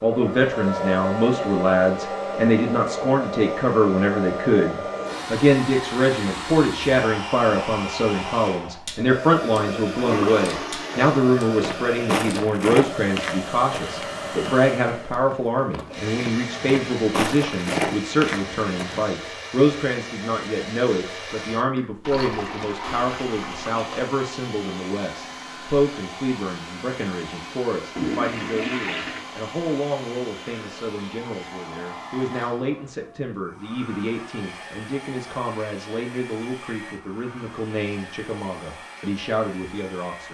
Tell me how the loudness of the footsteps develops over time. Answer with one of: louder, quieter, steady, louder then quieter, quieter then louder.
quieter then louder.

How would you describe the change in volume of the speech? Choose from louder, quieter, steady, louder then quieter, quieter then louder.
quieter.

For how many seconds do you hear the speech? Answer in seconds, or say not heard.
40 s.